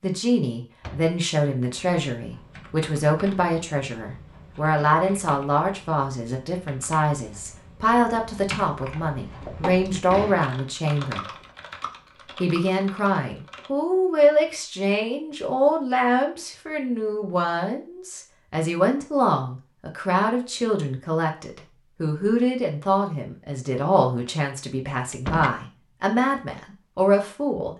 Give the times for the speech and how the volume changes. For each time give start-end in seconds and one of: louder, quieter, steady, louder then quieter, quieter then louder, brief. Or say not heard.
0.0-11.3 steady
12.2-27.7 steady.